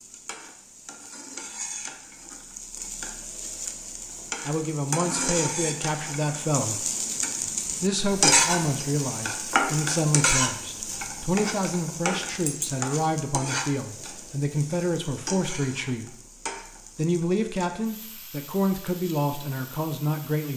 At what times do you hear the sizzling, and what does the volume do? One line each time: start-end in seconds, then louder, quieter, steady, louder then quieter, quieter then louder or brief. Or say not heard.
0.0-20.5 louder then quieter.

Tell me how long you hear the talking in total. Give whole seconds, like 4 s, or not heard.
14 s.